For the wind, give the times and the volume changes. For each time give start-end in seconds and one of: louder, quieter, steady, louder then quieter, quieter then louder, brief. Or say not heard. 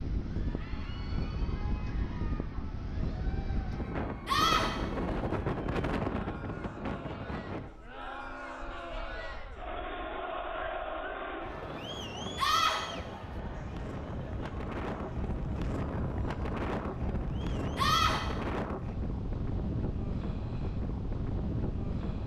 0.0-22.2 quieter then louder.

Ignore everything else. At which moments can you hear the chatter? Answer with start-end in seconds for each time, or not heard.
0.2-17.9.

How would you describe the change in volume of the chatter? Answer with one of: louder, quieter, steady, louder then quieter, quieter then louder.
louder then quieter.